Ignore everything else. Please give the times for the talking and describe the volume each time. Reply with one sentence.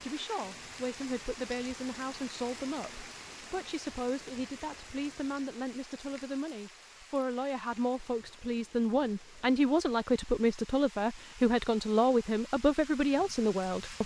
You can hear the talking from 0.0 to 14.0 s, getting louder.